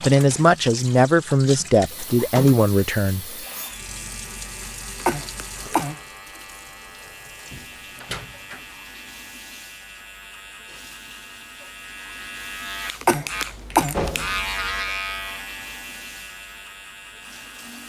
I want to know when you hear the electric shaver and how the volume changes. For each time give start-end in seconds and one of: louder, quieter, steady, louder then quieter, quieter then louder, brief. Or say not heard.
3.4-17.8 louder.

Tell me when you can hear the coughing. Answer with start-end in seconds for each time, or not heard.
5.0-6.0, 13.0-13.9.